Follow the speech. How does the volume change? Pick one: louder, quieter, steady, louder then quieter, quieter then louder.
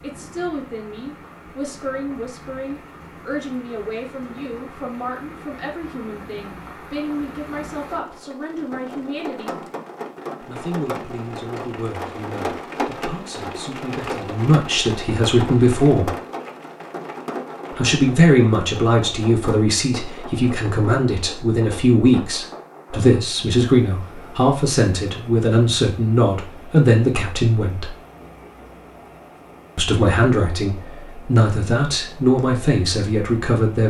louder.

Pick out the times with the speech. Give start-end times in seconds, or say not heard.
0.0-9.7, 10.4-16.1, 17.8-27.9, 29.8-33.8.